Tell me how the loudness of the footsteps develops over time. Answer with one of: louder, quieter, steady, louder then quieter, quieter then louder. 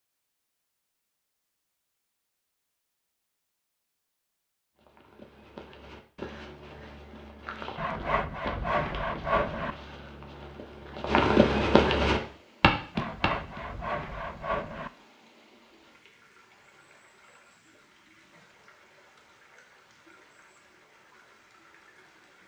louder.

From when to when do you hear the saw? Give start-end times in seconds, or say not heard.
7.8-9.8, 12.9-14.9.